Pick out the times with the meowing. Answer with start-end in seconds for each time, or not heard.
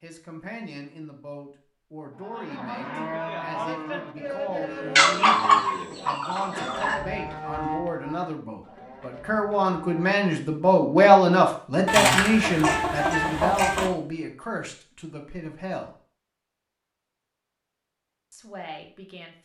not heard.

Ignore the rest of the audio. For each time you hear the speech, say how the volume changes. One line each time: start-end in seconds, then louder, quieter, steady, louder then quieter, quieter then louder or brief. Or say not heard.
0.0-15.9 louder then quieter
18.3-19.3 brief.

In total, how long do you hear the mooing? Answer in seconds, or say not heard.
8 s.